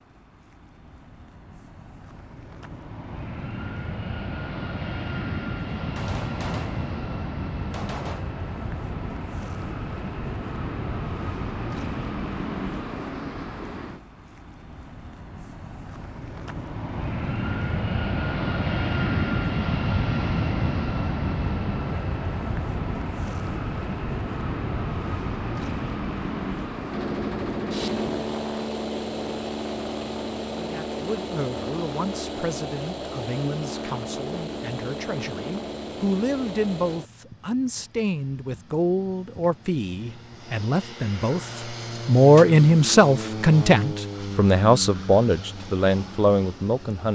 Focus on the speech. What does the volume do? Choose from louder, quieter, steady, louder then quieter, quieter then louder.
louder.